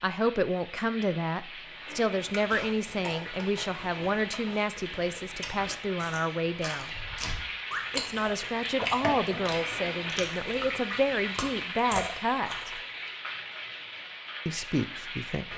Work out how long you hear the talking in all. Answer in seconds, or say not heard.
13 s.